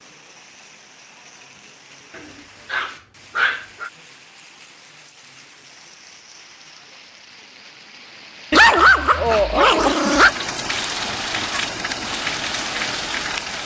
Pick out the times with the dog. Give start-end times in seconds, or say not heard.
2.1-3.9, 8.5-10.3.